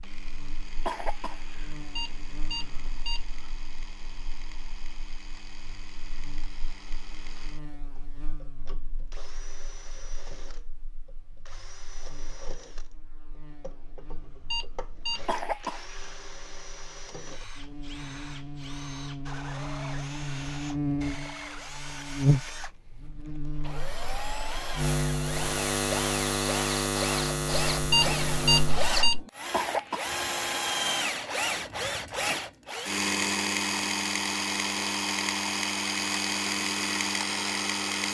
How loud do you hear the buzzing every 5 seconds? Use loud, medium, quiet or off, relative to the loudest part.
quiet, quiet, quiet, medium, loud, loud, off, off.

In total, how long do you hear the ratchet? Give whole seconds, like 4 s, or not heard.
not heard.